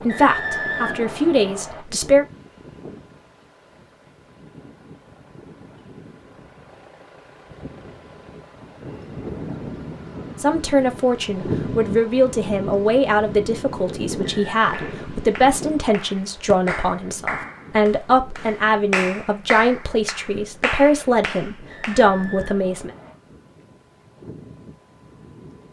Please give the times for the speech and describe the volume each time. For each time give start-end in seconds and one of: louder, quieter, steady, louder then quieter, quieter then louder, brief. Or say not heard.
0.0-2.2 brief
10.4-22.9 steady.